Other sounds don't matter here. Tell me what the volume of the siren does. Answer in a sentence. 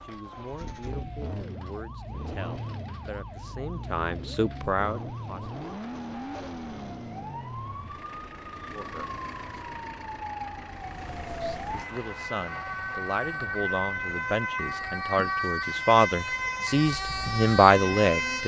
The volume of the siren goes up.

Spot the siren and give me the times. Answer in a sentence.
The siren can be heard from 0.0 to 18.4 s.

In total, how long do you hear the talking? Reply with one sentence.
You can hear the talking for 13 seconds altogether.